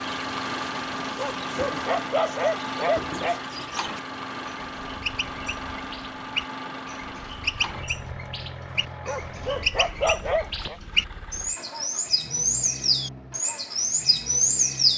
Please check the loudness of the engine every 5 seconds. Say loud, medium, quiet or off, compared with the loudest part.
loud, medium, medium.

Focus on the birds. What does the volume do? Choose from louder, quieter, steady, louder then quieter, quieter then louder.
louder.